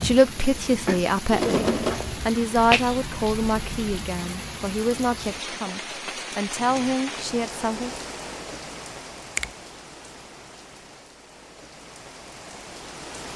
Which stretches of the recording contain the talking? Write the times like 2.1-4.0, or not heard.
0.0-7.9.